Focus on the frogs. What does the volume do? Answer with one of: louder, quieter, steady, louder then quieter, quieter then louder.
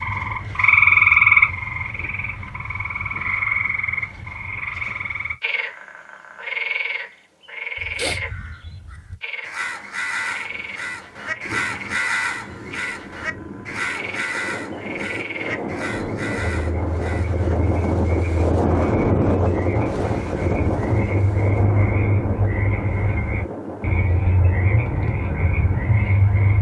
quieter then louder.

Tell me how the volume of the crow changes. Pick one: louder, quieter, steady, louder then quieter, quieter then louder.
louder then quieter.